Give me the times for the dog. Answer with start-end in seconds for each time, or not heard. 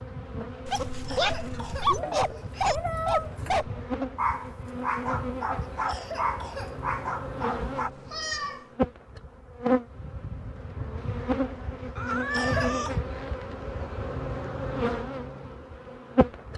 0.7-7.9.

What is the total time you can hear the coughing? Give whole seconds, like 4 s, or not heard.
4 s.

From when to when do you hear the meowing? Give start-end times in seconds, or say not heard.
1.9-3.6, 7.8-8.7, 11.9-12.9.